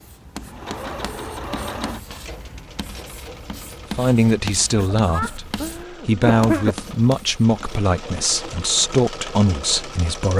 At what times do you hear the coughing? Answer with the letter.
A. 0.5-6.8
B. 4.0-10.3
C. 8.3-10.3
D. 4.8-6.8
D.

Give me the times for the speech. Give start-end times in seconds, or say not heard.
4.0-10.3.